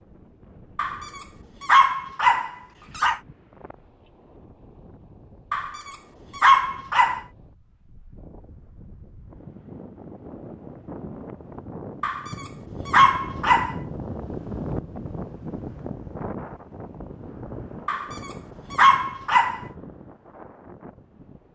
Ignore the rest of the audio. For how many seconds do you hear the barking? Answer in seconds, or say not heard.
8 s.